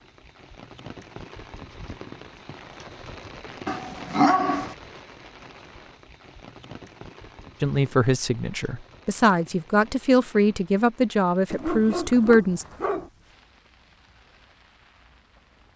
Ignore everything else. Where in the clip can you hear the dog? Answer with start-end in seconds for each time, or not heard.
3.6-4.8, 11.5-13.1.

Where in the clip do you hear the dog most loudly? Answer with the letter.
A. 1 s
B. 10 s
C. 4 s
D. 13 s
C.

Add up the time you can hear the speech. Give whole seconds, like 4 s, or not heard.
5 s.